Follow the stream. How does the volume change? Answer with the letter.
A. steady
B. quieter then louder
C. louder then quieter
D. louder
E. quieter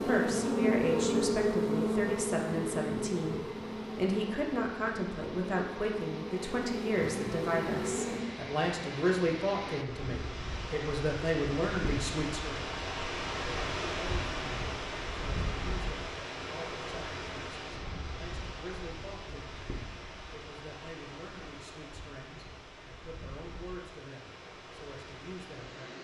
C.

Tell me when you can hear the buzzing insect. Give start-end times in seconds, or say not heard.
0.0-8.2.